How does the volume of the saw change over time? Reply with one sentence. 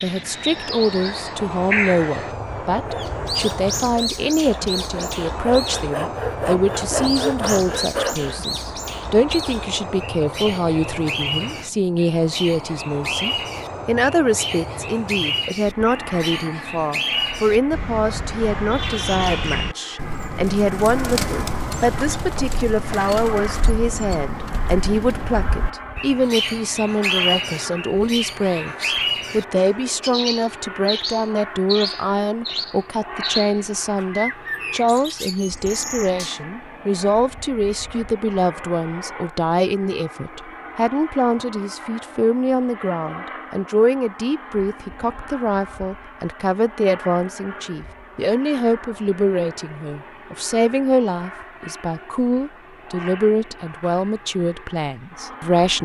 The loudness of the saw goes up.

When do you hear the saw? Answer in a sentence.
The saw can be heard from 2.8 to 8.4 s.